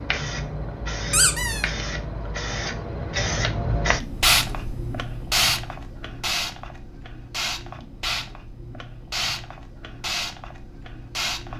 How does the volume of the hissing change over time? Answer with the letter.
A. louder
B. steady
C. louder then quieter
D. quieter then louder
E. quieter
C.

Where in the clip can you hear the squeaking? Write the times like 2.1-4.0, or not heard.
1.1-1.6.